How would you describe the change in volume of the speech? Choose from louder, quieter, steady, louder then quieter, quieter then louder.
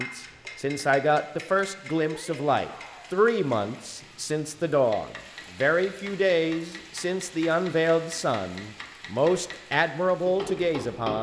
steady.